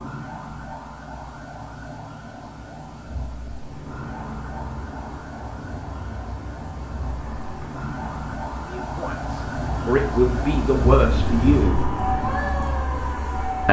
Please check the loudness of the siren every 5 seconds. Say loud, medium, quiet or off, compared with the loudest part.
medium, medium, loud.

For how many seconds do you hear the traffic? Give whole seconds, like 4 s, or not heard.
10 s.